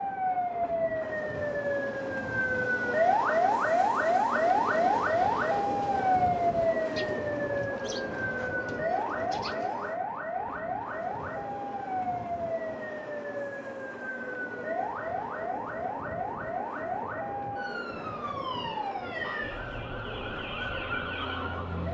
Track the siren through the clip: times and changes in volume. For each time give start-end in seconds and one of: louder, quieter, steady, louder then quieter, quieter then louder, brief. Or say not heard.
0.0-21.8 quieter.